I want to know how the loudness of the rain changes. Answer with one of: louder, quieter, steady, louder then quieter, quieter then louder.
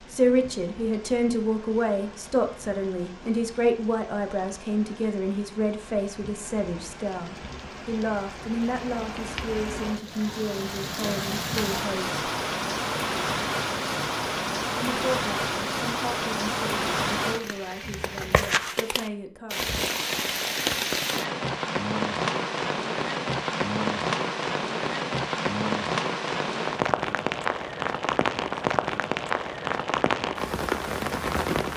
louder.